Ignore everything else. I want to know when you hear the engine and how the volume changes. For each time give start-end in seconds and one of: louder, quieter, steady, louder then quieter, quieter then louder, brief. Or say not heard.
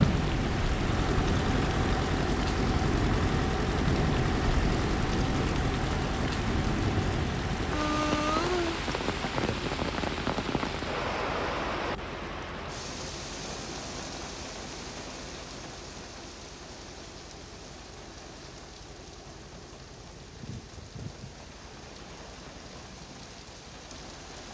0.0-24.4 quieter.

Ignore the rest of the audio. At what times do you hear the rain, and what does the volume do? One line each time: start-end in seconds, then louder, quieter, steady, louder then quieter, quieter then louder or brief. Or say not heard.
0.0-24.4 quieter.